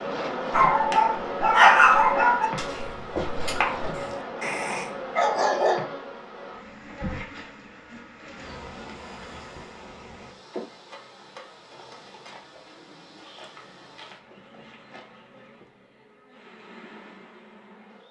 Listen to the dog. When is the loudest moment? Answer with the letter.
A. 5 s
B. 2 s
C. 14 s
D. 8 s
B.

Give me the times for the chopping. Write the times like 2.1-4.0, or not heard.
2.6-4.2.